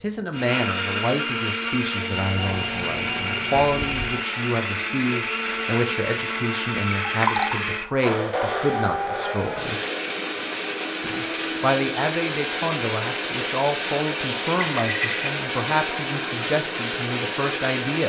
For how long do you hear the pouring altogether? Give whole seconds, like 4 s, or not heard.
4 s.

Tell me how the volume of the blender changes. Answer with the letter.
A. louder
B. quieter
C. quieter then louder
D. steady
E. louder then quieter
D.